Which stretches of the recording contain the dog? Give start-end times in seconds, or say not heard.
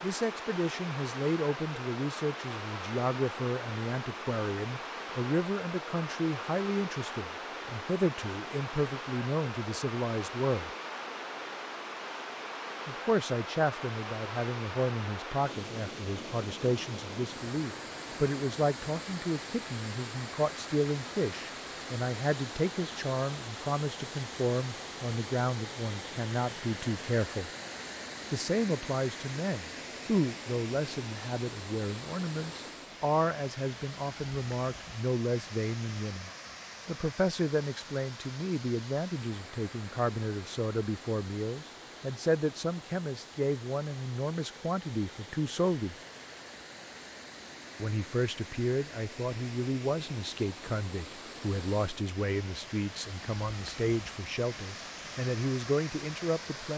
not heard.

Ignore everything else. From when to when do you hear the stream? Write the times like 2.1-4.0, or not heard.
0.0-56.7.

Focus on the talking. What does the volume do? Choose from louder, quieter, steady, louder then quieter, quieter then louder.
steady.